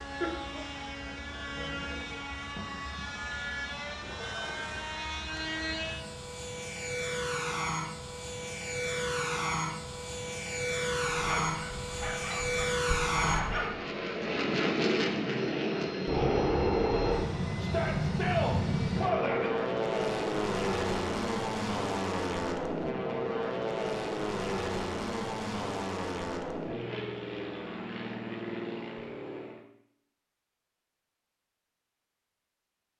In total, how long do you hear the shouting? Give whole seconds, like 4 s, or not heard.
2 s.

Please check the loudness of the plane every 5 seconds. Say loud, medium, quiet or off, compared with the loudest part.
medium, medium, loud, loud, loud, medium, off.